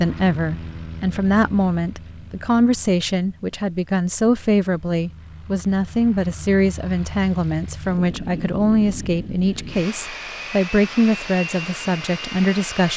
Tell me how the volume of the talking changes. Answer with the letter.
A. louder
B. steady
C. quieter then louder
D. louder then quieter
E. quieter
B.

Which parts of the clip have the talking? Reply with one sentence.
The talking can be heard from 0.0 to 12.9 s.